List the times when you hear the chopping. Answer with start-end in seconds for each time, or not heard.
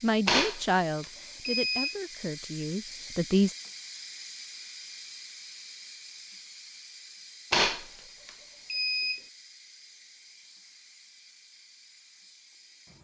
not heard.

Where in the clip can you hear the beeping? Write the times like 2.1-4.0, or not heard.
0.2-1.9, 7.5-9.2.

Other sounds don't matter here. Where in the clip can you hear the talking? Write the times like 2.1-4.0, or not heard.
0.0-3.5.